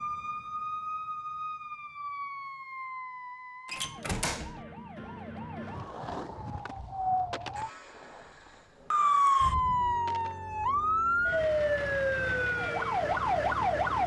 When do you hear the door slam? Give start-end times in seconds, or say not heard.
3.6-4.7.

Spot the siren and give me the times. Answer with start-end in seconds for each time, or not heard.
0.0-14.0.